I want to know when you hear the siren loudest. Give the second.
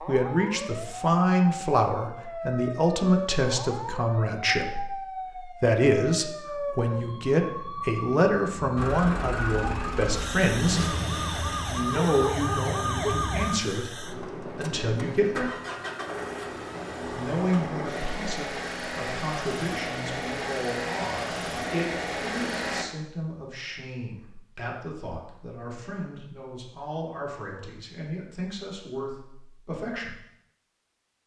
13 s.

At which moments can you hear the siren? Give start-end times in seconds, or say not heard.
0.0-13.6.